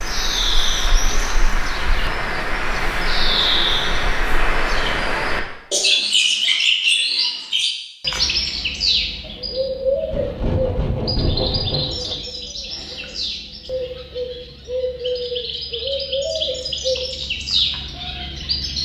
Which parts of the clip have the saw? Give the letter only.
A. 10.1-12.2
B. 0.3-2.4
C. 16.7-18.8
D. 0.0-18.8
A.